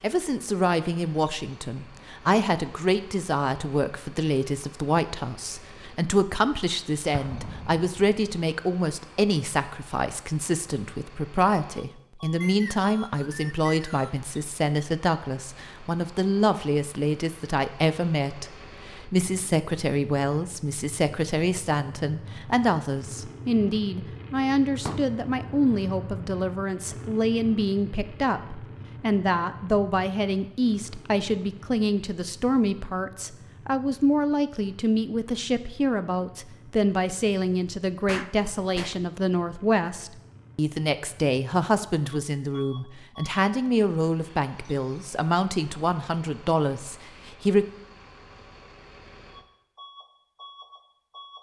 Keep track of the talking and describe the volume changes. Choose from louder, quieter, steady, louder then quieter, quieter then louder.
steady.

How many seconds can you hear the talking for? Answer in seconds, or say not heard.
48 s.